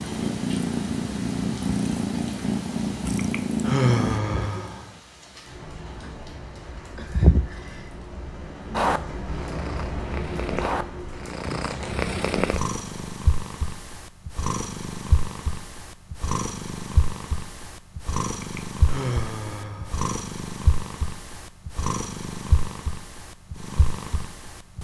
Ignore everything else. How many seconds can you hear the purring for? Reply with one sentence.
The purring can be heard for 22 seconds in total.